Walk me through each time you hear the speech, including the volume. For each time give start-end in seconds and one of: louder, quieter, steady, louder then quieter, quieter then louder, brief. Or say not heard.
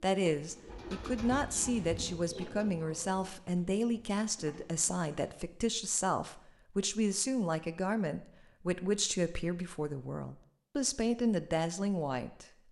0.0-12.4 steady.